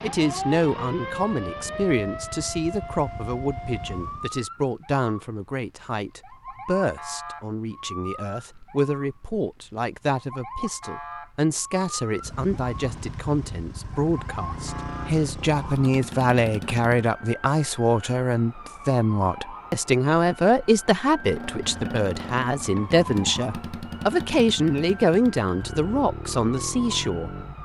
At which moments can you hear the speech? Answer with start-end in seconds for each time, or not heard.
0.0-27.4.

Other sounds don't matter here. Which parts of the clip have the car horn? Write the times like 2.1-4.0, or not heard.
not heard.